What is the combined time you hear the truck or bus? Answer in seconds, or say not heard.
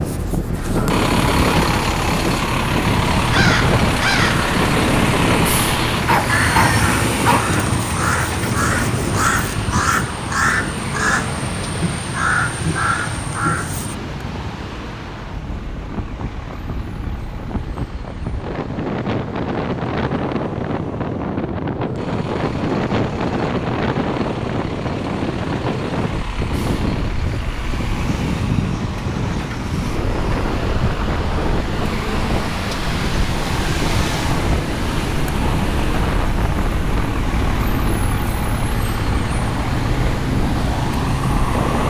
42 s.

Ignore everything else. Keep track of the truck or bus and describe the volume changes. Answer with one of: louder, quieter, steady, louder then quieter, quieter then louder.
quieter then louder.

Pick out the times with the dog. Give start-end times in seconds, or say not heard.
5.9-7.6.